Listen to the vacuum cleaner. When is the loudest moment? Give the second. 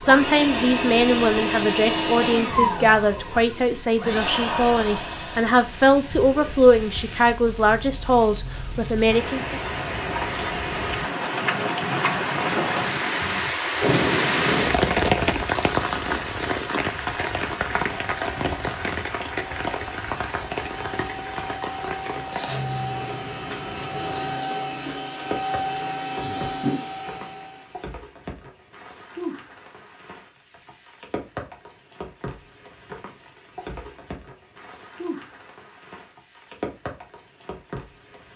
2 s.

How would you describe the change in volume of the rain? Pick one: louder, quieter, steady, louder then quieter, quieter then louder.
louder then quieter.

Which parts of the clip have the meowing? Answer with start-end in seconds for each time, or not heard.
not heard.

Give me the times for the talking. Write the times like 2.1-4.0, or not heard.
0.0-9.6.